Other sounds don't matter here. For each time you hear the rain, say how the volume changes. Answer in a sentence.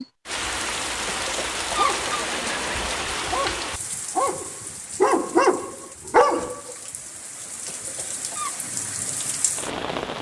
You can hear the rain from 0.0 to 10.1 s, getting quieter then louder.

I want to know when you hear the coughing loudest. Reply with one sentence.
The loudest moment of the coughing is at 2 seconds.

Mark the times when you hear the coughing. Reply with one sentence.
You can hear the coughing from 1.1 to 3.0 s and from 7.7 to 8.6 s.